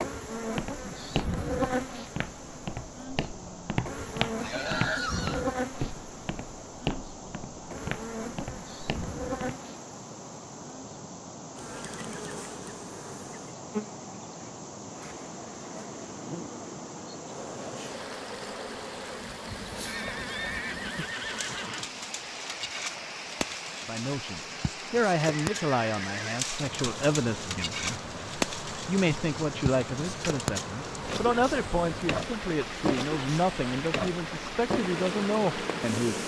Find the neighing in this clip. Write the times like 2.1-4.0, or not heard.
4.3-5.5, 19.9-21.9, 25.2-26.2.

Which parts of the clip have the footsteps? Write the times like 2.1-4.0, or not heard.
0.3-9.6.